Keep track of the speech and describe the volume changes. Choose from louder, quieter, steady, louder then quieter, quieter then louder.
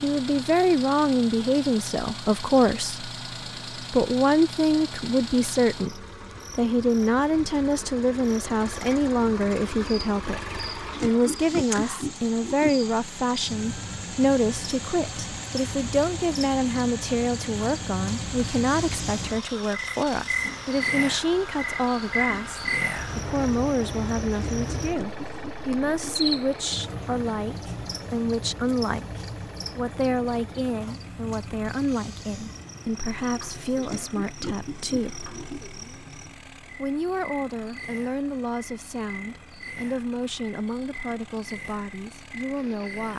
quieter.